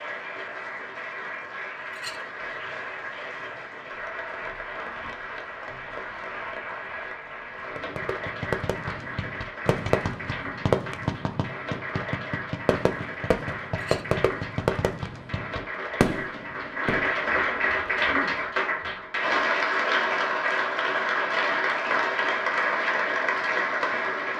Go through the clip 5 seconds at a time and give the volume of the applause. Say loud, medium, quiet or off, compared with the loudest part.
medium, medium, medium, loud, loud.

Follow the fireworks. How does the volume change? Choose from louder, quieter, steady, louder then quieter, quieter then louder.
steady.